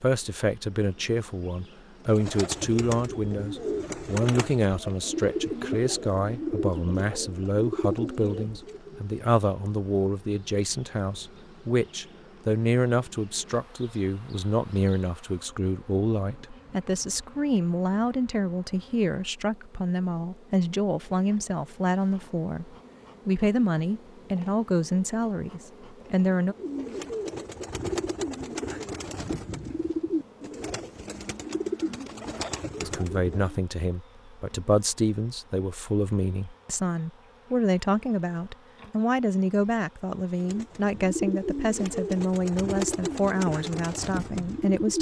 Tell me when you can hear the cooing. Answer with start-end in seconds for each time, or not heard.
2.0-9.1, 26.5-33.6, 40.4-44.9.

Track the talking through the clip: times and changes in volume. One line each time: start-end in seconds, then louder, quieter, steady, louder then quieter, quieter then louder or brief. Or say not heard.
0.0-26.6 steady
32.8-44.9 steady.